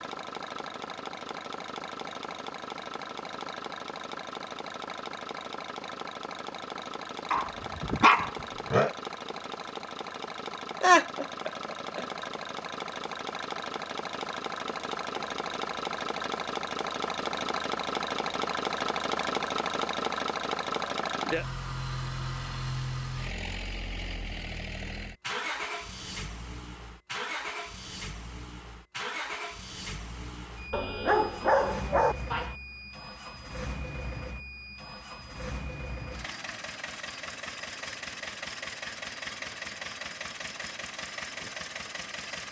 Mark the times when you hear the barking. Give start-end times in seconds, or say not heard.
7.3-8.9, 30.7-32.5.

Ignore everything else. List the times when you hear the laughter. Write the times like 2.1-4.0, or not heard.
10.8-12.1.